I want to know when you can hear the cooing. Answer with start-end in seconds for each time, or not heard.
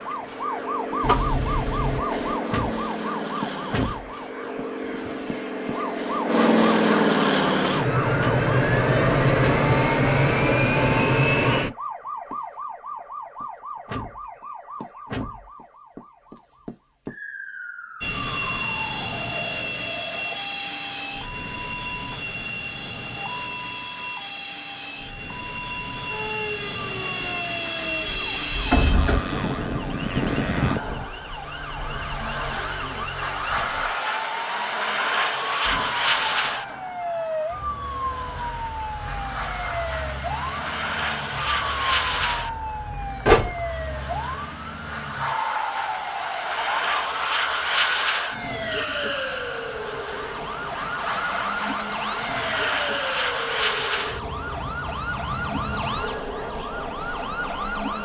not heard.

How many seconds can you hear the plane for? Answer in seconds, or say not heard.
52 s.